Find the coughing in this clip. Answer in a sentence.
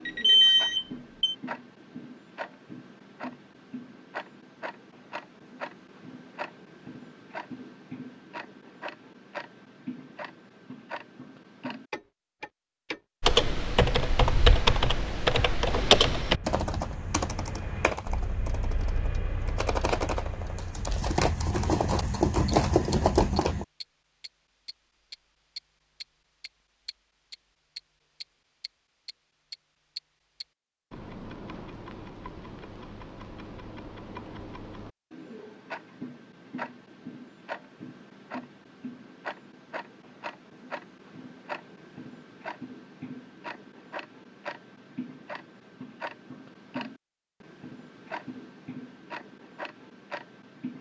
The coughing can't be heard in this clip.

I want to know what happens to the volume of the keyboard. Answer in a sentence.
The loudness of the keyboard goes down, then up.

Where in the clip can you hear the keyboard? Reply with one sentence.
You can hear the keyboard from 13.2 to 23.6 s.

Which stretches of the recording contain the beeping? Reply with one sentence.
The beeping can be heard from 0.1 to 1.4 s.